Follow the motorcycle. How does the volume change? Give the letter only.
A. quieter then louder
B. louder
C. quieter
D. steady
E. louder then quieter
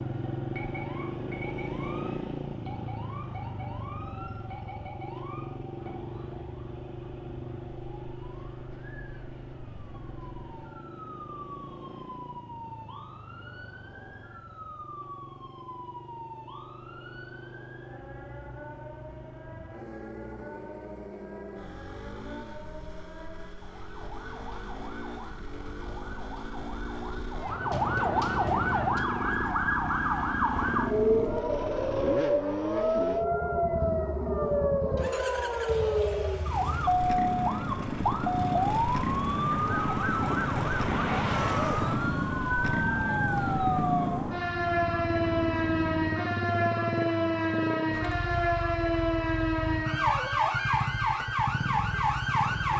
A.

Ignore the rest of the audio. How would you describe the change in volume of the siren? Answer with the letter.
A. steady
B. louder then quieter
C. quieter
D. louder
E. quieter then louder
D.